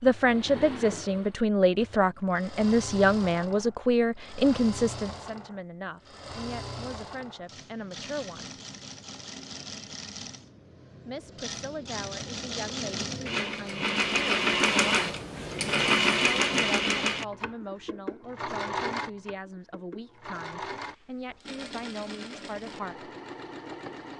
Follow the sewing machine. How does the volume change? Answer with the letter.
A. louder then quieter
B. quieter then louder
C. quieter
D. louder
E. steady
A.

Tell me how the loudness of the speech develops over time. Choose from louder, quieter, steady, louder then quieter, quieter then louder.
quieter.